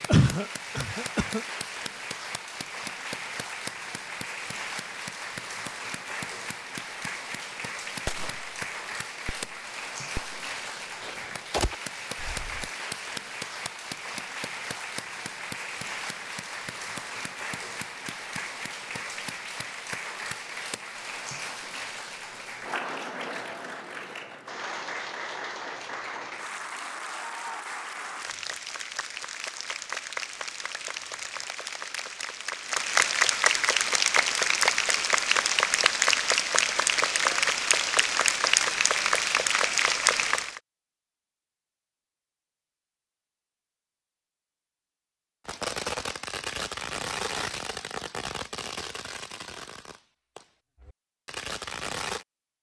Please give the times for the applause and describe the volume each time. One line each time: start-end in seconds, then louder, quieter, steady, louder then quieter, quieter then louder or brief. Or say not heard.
0.0-40.6 louder.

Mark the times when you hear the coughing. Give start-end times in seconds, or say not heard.
0.1-1.4.